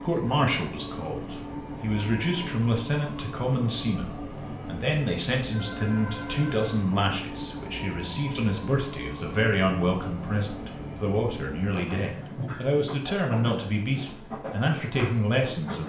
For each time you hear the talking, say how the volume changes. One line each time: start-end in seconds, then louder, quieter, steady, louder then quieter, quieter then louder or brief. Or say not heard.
0.0-15.8 steady.